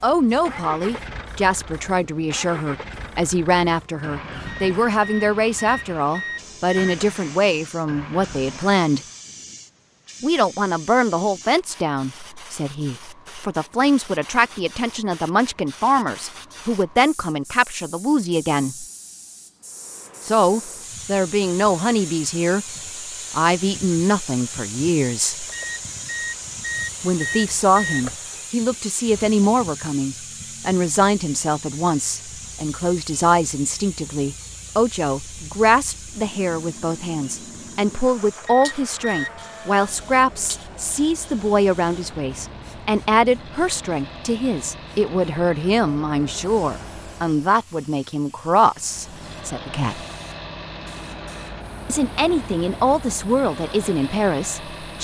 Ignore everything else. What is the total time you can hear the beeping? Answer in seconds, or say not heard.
6 s.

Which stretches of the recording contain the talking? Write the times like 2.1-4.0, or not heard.
0.0-9.0, 10.2-18.9, 20.2-22.6, 23.3-25.4, 27.0-50.0, 51.9-54.9.